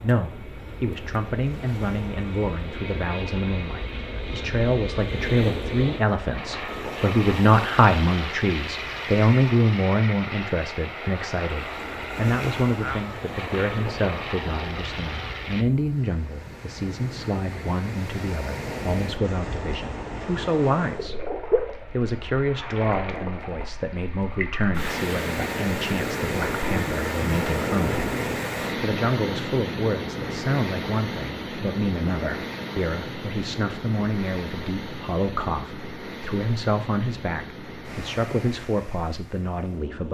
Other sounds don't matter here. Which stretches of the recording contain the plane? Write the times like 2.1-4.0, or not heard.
0.0-15.7.